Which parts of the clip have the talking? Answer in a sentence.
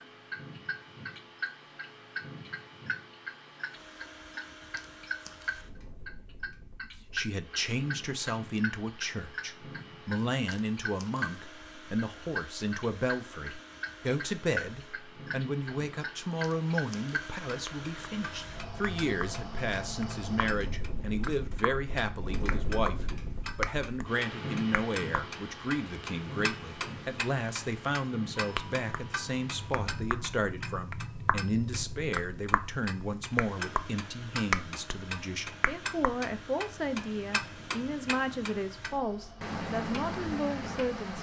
You can hear the talking from 7.1 to 41.1 s.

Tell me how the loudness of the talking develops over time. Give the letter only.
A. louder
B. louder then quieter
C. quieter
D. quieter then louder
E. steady
E.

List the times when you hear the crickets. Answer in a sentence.
The crickets can't be heard in this clip.